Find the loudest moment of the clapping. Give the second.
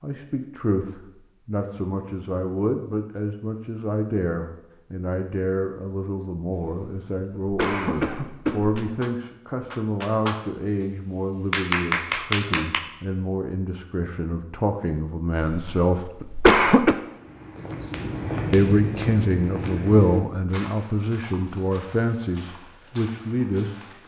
12 s.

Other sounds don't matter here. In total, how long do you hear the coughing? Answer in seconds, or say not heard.
4 s.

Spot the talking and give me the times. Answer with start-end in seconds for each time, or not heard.
0.0-16.1, 18.5-23.8.